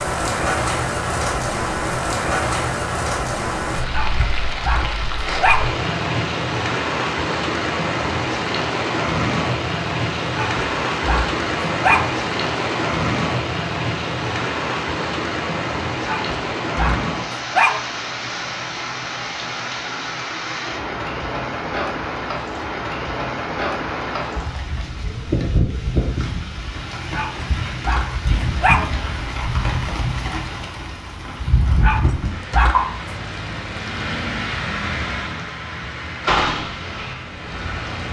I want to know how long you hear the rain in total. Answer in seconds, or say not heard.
38 s.